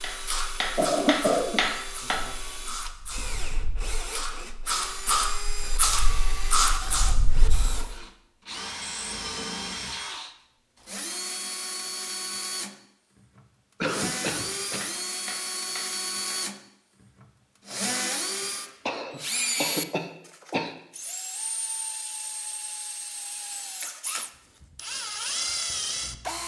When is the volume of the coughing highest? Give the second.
1 s.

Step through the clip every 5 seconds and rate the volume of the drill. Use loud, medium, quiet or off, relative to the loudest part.
medium, medium, loud, loud, medium, loud.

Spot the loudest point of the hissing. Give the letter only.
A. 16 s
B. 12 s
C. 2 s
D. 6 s
D.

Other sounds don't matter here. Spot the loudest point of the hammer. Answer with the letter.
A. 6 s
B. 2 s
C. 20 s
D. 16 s
B.